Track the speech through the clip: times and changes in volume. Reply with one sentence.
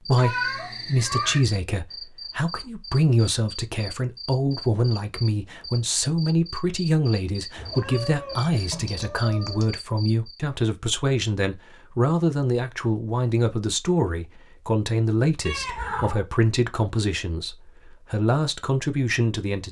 You can hear the speech from 0.1 to 19.6 s, at a steady volume.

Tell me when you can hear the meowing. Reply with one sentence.
You can hear the meowing from 0.1 to 1.4 s, from 7.5 to 9.8 s and from 15.4 to 16.2 s.